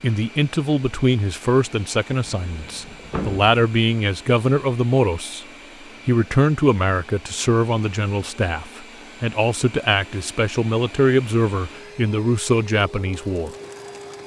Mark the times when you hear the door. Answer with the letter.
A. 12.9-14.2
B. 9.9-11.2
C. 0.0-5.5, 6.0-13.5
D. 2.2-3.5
D.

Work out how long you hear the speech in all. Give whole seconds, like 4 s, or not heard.
13 s.